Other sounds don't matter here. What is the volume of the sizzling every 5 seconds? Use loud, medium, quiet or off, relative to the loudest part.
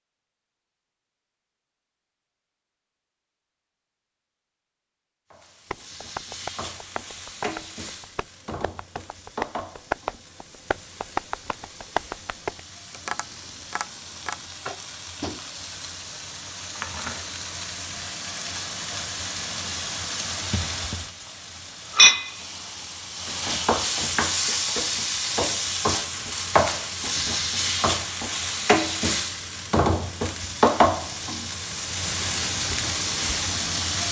off, quiet, quiet, medium, loud, loud, loud.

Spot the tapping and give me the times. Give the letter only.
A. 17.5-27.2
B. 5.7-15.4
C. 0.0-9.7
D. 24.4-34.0
B.